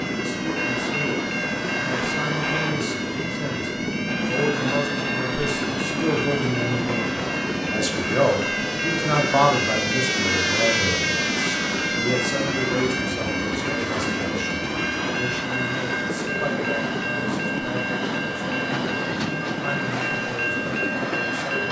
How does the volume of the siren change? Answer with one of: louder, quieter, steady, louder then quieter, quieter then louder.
louder then quieter.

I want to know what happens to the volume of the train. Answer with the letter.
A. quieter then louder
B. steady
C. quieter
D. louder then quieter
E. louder
B.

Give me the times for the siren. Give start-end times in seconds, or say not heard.
0.0-15.4.